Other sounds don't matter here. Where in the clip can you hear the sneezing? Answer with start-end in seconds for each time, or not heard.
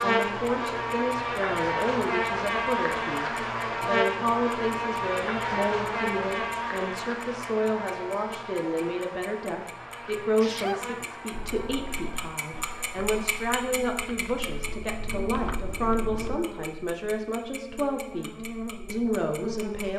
10.4-10.9.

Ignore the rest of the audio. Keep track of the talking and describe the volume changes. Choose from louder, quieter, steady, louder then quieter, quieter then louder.
steady.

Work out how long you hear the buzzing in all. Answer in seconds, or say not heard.
20 s.